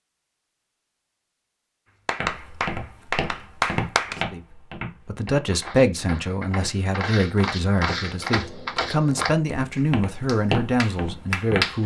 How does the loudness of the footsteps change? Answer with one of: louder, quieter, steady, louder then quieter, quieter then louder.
quieter then louder.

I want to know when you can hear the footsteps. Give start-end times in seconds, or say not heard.
2.1-11.8.